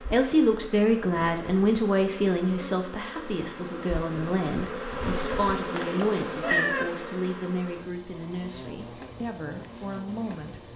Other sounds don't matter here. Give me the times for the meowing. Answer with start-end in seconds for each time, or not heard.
5.8-6.8.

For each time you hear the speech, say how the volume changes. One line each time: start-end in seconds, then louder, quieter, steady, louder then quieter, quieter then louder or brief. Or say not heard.
0.1-10.6 quieter.